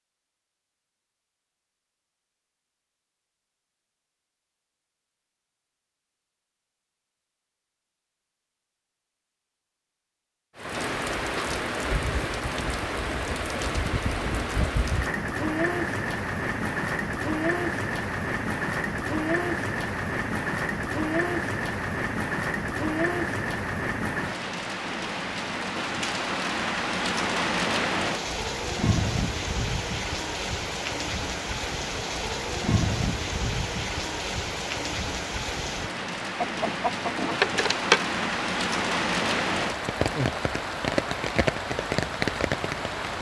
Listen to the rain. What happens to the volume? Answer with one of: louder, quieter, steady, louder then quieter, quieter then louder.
steady.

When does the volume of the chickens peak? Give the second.
38 s.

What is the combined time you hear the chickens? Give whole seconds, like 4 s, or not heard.
2 s.